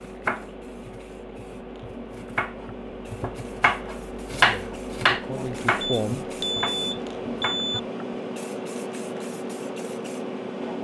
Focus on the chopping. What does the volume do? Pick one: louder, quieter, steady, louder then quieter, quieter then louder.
louder then quieter.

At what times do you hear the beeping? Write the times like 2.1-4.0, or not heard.
5.8-7.8.